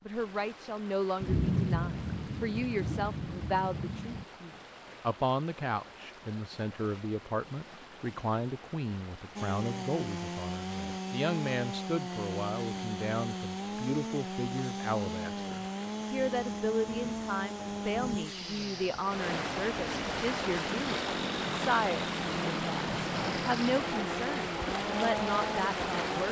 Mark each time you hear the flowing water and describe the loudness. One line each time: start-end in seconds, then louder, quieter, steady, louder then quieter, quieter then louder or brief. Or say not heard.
0.0-26.2 louder.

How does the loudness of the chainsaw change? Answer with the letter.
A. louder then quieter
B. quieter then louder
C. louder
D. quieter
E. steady
E.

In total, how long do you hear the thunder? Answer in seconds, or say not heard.
5 s.